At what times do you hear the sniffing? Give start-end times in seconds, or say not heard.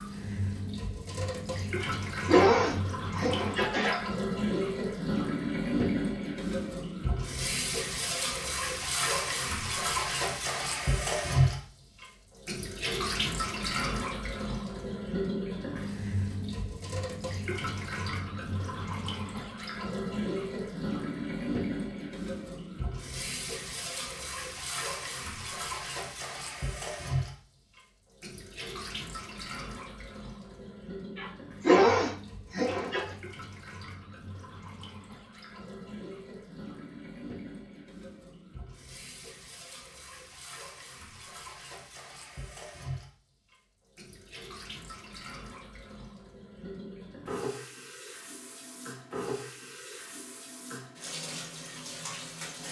1.8-4.0, 31.1-33.1.